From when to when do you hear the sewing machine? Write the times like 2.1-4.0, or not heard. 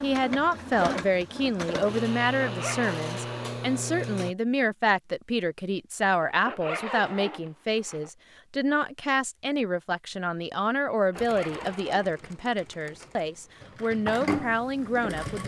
0.0-4.3, 11.2-15.4.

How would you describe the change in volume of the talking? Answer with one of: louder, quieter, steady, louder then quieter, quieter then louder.
steady.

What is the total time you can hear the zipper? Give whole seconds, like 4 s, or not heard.
4 s.